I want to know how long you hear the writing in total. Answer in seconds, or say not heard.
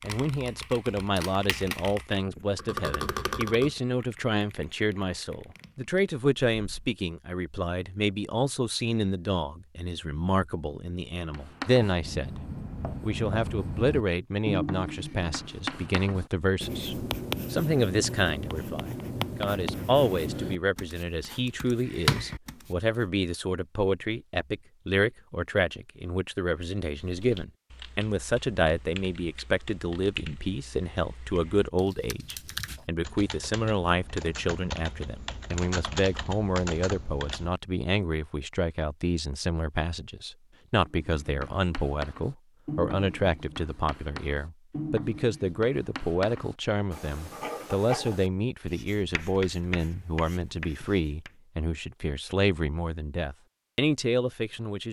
22 s.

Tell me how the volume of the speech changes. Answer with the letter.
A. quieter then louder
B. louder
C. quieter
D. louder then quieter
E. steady
E.